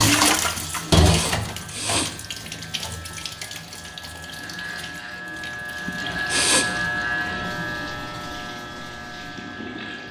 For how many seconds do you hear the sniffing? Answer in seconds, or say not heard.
2 s.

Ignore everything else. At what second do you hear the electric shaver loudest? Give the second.
7 s.